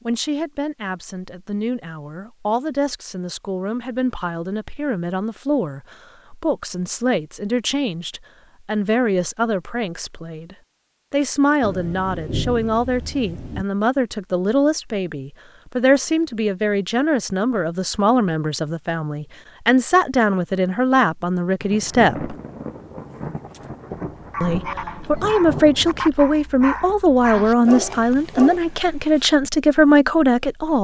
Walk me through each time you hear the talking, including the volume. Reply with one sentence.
You can hear the talking from 0.1 to 22.4 s, getting louder; and from 24.4 to 30.7 s, at a steady volume.